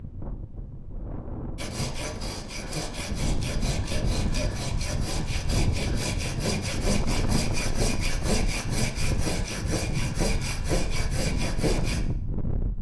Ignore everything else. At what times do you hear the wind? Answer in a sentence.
The wind can be heard from 0.0 to 12.7 s.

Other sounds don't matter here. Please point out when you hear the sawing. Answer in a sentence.
You can hear the sawing from 1.6 to 12.0 s.